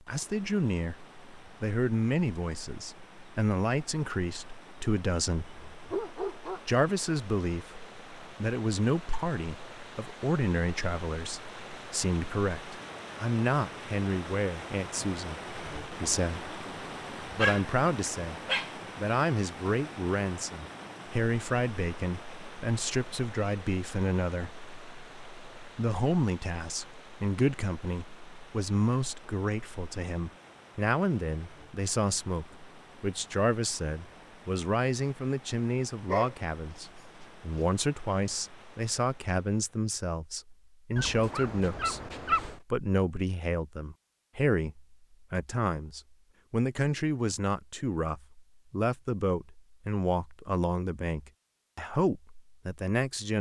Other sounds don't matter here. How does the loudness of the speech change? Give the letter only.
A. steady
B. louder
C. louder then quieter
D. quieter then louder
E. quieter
A.